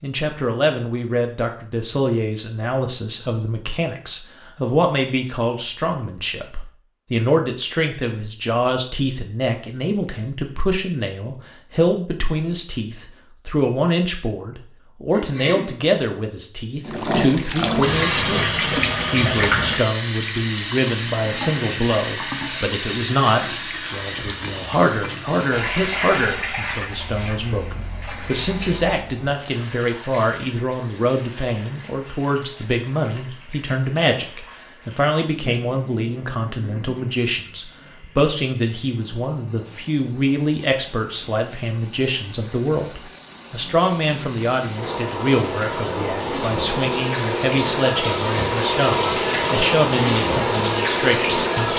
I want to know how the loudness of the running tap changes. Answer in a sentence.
The volume of the running tap goes down, then up.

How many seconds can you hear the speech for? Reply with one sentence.
You can hear the speech for 52 seconds altogether.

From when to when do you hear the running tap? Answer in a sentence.
The running tap can be heard from 16.9 to 51.7 s.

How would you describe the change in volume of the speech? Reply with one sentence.
The loudness of the speech stays about the same.